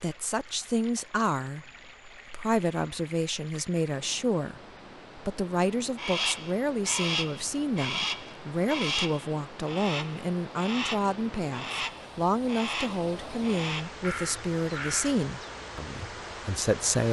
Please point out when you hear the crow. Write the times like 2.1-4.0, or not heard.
6.0-15.6.